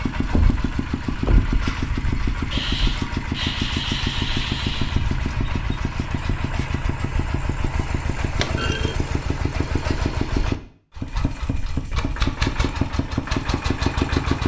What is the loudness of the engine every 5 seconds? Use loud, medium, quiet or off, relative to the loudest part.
loud, medium, loud.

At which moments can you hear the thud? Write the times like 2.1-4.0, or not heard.
0.2-1.6, 8.4-8.9.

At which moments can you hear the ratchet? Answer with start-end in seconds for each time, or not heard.
2.5-5.0.